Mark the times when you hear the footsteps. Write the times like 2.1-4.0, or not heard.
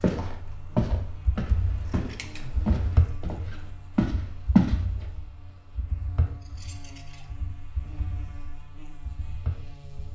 0.0-4.8.